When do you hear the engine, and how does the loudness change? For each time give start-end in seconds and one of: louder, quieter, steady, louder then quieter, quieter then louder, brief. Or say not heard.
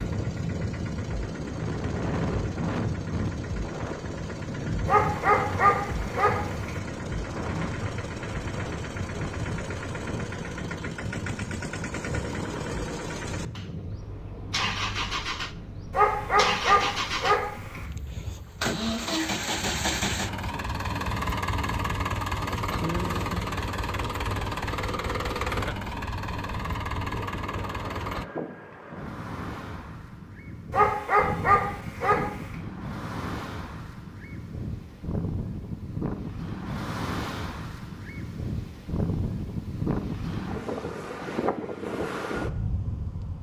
0.0-28.2 louder.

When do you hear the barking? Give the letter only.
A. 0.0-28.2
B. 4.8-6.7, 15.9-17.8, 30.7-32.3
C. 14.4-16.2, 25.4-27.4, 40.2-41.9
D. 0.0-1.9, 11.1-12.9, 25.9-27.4
B.